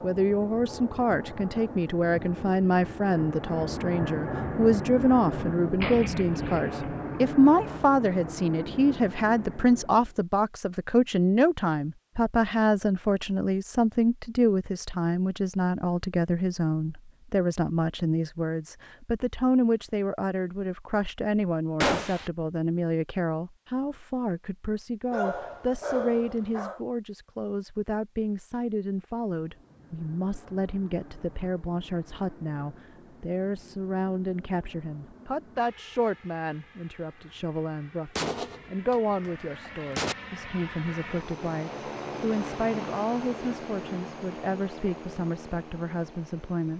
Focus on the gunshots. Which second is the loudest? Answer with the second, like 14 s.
22 s.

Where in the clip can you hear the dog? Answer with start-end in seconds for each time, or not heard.
25.1-26.8.